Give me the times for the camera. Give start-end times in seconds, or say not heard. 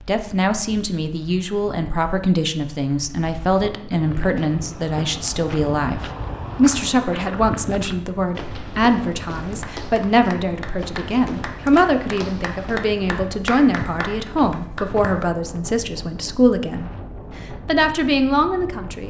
not heard.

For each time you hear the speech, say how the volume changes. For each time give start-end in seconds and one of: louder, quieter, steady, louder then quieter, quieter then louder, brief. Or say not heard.
0.1-16.9 steady
17.6-19.0 brief.